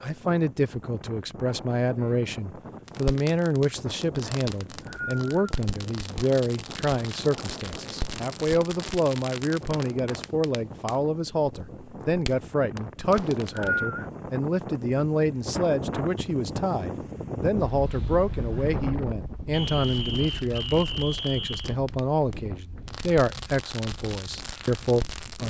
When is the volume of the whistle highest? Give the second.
14 s.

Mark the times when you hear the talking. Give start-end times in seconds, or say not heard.
0.0-25.4.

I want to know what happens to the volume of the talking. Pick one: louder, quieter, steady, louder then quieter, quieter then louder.
steady.